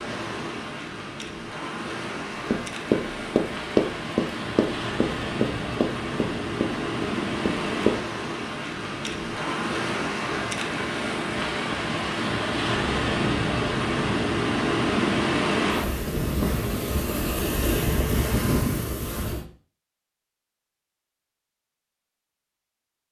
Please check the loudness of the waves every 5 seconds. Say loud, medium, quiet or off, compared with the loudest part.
medium, loud, loud, loud, off.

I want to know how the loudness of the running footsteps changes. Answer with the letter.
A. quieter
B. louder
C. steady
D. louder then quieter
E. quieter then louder
A.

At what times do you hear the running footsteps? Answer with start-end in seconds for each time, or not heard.
2.5-8.0.